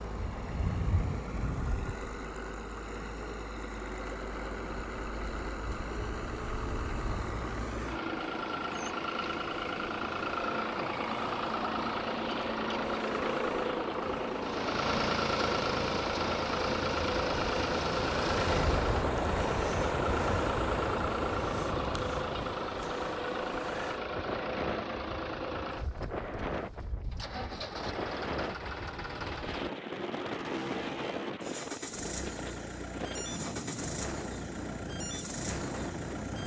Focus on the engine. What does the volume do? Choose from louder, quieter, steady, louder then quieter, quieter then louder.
louder then quieter.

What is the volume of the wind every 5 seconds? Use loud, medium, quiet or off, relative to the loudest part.
medium, medium, medium, loud, loud, medium, medium, medium.